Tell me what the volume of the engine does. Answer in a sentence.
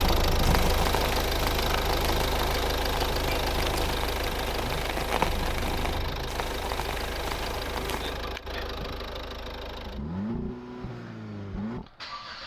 The loudness of the engine goes down.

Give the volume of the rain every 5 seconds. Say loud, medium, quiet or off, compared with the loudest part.
loud, loud, off.